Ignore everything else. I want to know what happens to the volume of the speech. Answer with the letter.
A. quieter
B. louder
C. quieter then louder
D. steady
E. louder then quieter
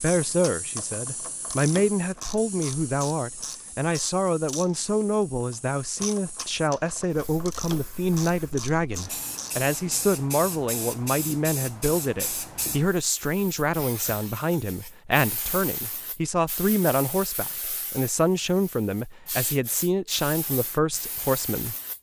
D.